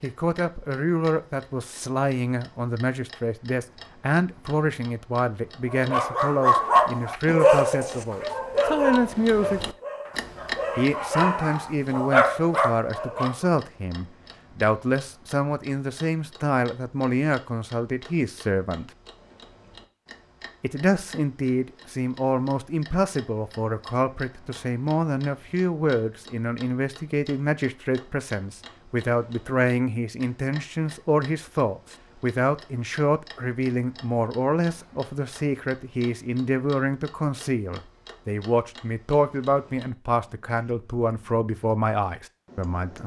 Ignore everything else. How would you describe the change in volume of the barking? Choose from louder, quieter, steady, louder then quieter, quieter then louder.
quieter then louder.